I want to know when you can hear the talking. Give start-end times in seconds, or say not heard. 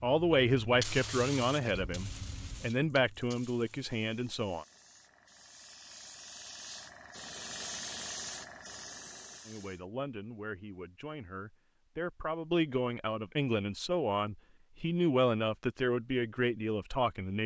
0.0-4.7, 9.4-17.4.